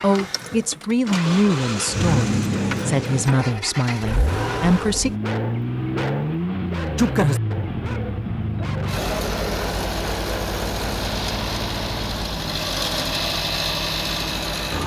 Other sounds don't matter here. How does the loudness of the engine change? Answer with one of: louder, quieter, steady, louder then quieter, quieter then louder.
steady.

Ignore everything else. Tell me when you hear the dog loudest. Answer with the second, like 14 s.
7 s.